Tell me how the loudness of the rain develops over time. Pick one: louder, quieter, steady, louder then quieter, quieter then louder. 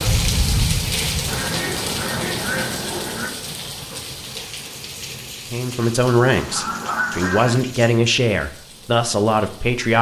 quieter.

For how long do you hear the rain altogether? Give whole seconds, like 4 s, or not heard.
10 s.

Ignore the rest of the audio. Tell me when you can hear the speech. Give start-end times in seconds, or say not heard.
5.5-9.9.